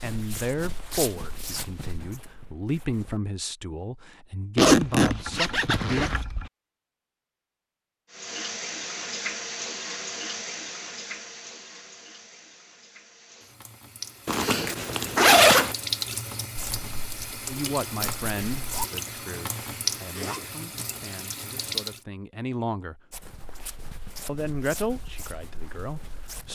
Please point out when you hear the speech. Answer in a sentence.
You can hear the speech from 0.0 to 6.2 s, from 17.4 to 23.0 s and from 24.2 to 26.5 s.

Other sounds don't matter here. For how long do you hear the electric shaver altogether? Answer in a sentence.
You can't hear the electric shaver here.